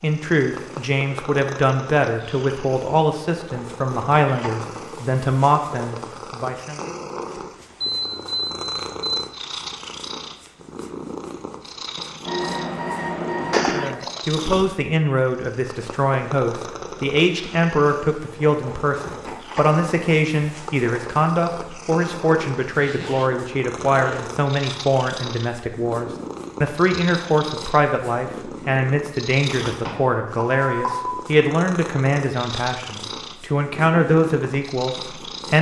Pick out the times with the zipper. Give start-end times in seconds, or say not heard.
13.5-14.2, 22.6-24.4.